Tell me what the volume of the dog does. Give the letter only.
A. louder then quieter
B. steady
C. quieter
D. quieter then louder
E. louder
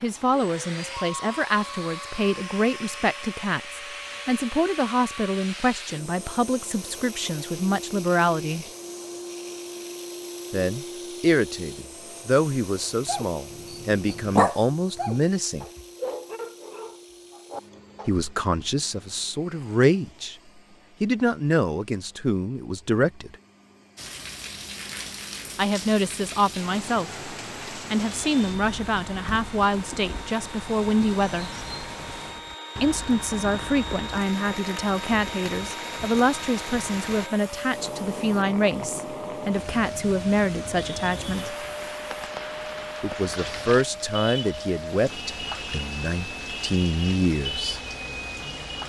A.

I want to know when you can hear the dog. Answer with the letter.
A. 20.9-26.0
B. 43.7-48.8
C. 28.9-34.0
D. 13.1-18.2
D.